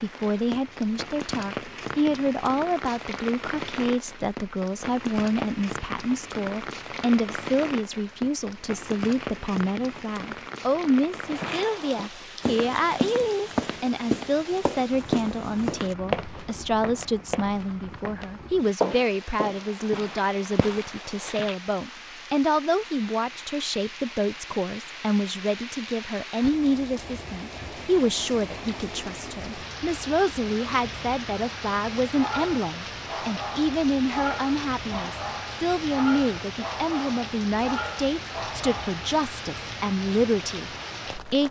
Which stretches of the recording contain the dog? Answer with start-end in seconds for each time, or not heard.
32.0-39.0.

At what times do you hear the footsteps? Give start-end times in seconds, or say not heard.
11.2-21.6.